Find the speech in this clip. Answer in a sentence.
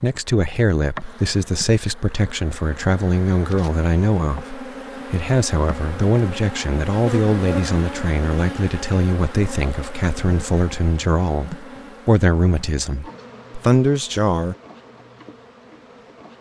You can hear the speech from 0.0 to 14.6 s.